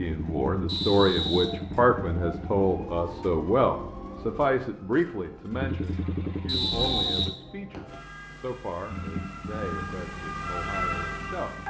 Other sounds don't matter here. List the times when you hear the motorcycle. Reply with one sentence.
You can hear the motorcycle from 0.1 to 2.6 s, from 5.5 to 7.3 s and from 8.8 to 11.6 s.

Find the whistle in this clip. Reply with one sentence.
The whistle can be heard from 0.7 to 1.4 s and from 6.5 to 8.0 s.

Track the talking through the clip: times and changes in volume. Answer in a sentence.
You can hear the talking from 0.0 to 11.6 s, getting quieter.